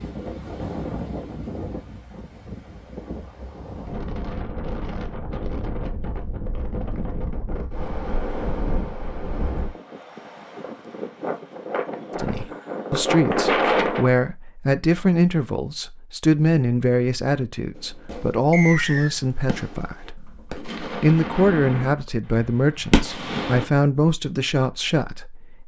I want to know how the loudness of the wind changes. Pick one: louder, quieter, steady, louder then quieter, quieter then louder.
louder.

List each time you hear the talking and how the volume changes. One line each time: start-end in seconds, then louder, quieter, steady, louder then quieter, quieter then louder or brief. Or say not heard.
12.2-25.6 steady.